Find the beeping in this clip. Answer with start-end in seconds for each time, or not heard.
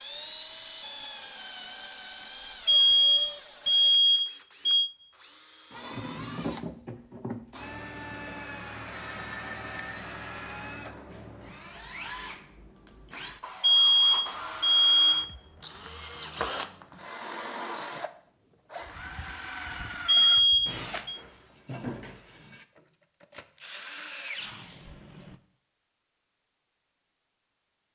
2.6-4.9, 13.6-15.2, 20.1-21.1.